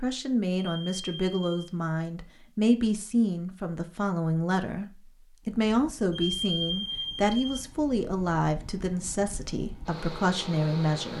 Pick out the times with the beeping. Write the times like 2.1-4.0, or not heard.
0.6-1.6, 6.1-7.6.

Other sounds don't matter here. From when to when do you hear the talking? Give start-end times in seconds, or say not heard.
0.0-11.1.